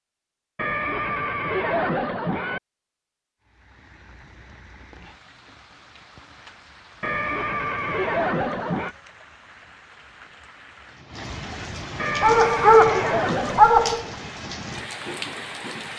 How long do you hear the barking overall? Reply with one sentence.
The barking can be heard for 2 seconds in total.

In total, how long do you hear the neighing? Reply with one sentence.
You can hear the neighing for 6 seconds altogether.